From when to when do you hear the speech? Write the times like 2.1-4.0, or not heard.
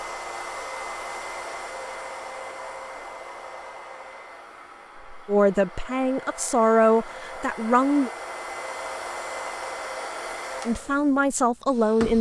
5.2-8.1, 10.7-12.1.